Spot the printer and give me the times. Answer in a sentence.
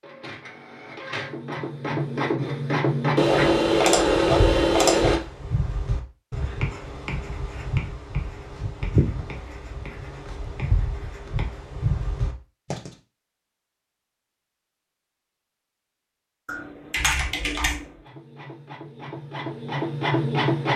The printer can be heard from 0.0 to 3.7 s and from 18.0 to 20.7 s.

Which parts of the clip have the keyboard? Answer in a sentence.
You can hear the keyboard from 3.1 to 5.2 s and from 16.4 to 18.0 s.